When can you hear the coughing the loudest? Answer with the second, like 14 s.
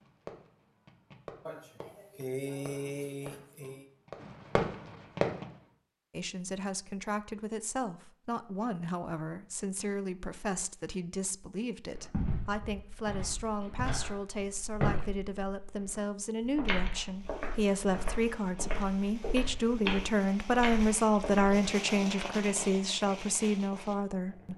2 s.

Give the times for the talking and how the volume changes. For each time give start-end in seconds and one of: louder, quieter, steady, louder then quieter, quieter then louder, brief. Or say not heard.
6.1-24.5 louder.